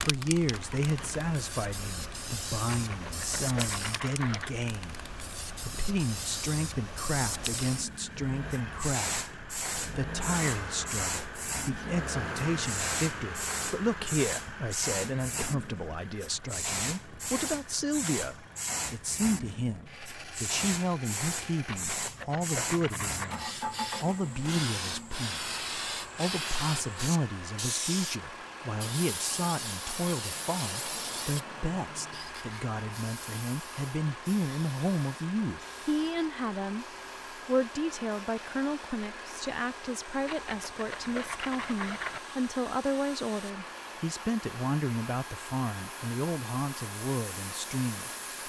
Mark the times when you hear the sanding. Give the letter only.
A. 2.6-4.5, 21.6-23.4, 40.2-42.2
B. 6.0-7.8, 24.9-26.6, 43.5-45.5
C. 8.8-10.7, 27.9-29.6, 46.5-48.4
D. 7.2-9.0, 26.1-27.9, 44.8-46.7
A.